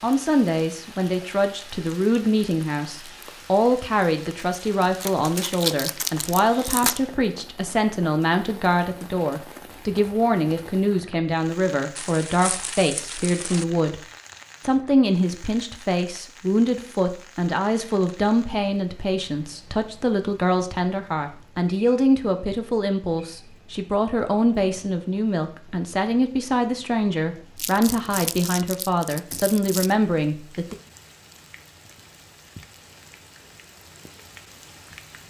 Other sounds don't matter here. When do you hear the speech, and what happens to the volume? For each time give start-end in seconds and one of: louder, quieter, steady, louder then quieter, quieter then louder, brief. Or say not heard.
0.0-14.0 steady
14.6-30.8 steady.